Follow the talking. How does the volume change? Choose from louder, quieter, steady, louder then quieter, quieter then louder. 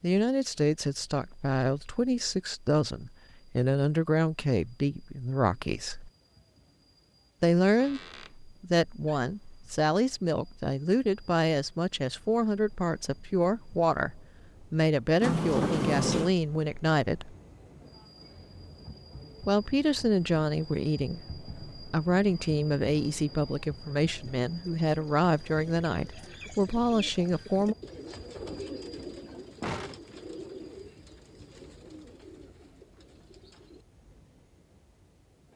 steady.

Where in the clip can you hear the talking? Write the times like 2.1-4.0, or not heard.
0.0-6.1, 7.4-17.4, 19.4-27.8.